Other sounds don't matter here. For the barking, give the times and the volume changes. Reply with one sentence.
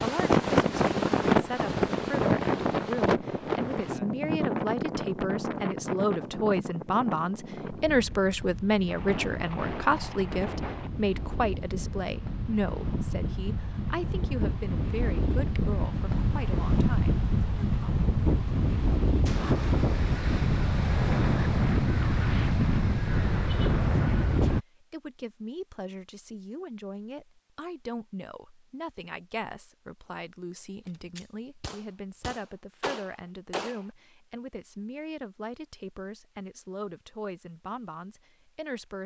The barking can't be heard in this clip.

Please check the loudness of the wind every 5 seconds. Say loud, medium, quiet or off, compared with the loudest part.
loud, medium, medium, loud, loud, off, off, off.